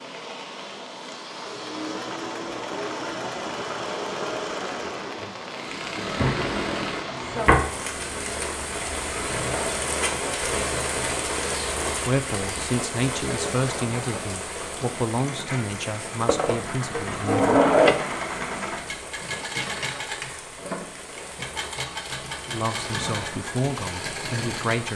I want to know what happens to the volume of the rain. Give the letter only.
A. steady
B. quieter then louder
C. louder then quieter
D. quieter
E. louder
C.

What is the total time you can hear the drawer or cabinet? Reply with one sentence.
You can hear the drawer or cabinet for 3 seconds altogether.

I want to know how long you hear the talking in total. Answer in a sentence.
You can hear the talking for 8 seconds altogether.